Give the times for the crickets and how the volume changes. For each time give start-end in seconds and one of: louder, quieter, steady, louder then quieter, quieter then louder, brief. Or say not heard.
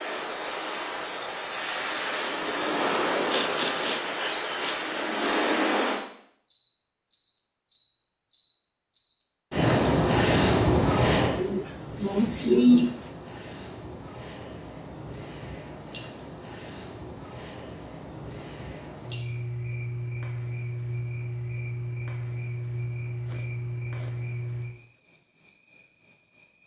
0.0-26.6 louder then quieter.